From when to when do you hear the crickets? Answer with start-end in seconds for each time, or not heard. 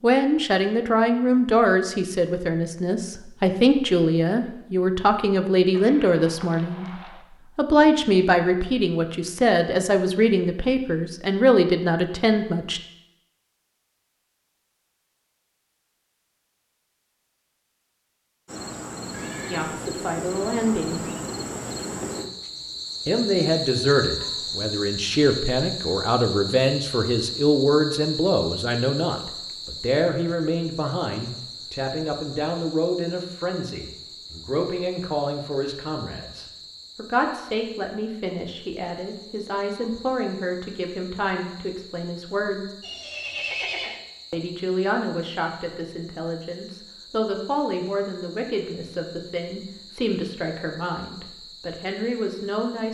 18.4-52.8.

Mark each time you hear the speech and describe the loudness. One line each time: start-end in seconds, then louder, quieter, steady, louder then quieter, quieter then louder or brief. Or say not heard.
0.0-6.8 steady
7.5-12.8 steady
19.5-21.1 brief
23.1-42.7 quieter
44.3-52.8 steady.